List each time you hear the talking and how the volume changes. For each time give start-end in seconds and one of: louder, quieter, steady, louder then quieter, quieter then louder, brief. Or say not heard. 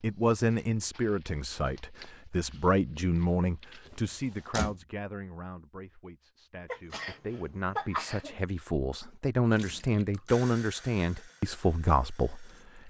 0.0-12.8 quieter then louder.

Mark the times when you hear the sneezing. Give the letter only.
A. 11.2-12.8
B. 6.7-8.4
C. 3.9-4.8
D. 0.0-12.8
B.